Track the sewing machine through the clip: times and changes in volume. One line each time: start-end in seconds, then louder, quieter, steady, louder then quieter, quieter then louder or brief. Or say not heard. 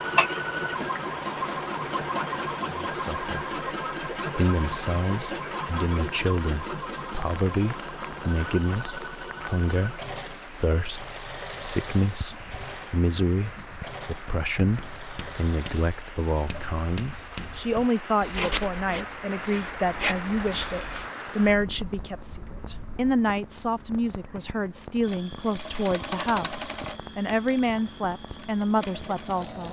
0.0-16.5 quieter
25.0-29.6 quieter then louder.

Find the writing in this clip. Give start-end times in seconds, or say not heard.
12.1-21.1.